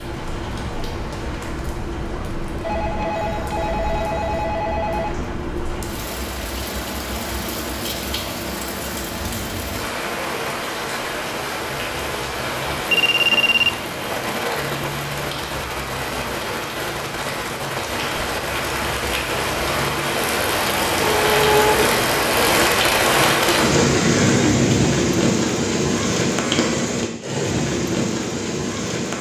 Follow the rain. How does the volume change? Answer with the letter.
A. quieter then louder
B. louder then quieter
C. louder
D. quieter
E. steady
C.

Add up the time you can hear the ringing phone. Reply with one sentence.
The ringing phone can be heard for 5 seconds in total.